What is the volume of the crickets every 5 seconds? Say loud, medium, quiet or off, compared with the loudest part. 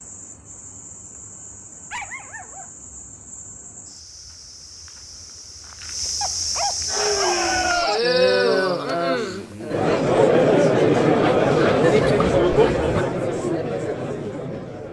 quiet, loud, off.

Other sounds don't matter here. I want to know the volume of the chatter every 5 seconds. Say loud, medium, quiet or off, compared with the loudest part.
off, loud, loud.